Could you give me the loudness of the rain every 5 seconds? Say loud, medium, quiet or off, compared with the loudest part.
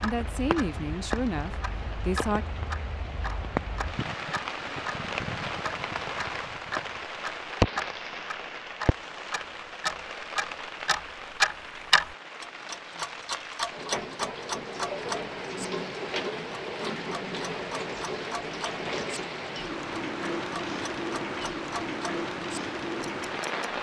loud, loud, medium, loud, loud.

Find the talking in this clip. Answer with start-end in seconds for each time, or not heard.
0.0-2.5.